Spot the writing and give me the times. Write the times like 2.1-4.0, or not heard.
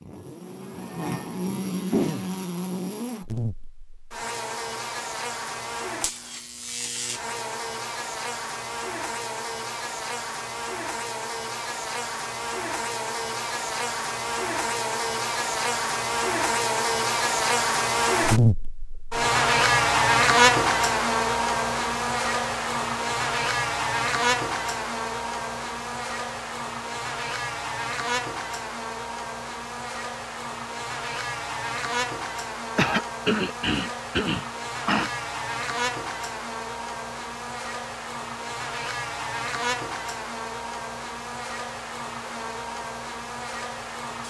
not heard.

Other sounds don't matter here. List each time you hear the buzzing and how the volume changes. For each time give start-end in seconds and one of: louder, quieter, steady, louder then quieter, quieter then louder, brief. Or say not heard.
0.0-44.2 louder then quieter.